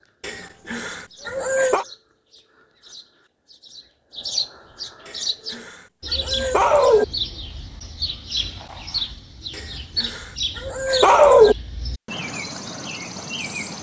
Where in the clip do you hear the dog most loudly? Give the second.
11 s.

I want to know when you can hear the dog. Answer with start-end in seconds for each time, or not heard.
0.2-1.9, 5.0-7.0, 9.6-11.6.